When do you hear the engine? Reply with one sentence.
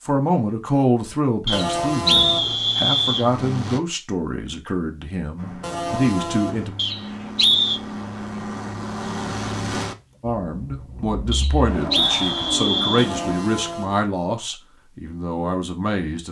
The engine can be heard from 2.2 to 3.8 s and from 5.3 to 13.4 s.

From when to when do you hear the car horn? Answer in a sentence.
The car horn can be heard from 1.5 to 2.6 s, from 5.6 to 6.7 s and from 12.9 to 14.1 s.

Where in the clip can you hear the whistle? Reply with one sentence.
The whistle can be heard from 1.4 to 3.2 s, from 6.8 to 7.8 s and from 11.3 to 13.1 s.